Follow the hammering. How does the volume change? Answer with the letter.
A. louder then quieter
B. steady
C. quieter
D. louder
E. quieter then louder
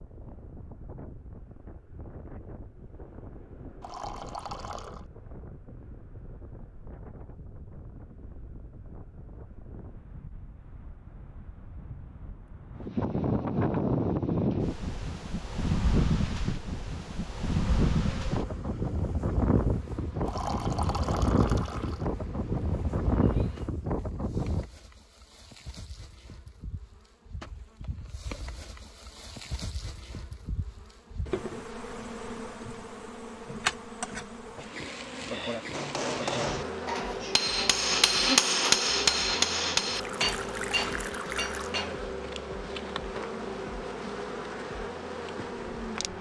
A.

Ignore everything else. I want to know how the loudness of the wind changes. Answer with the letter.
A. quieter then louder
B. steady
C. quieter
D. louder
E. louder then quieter
D.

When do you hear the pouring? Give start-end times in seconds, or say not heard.
3.8-5.0, 20.2-22.1, 40.0-41.8.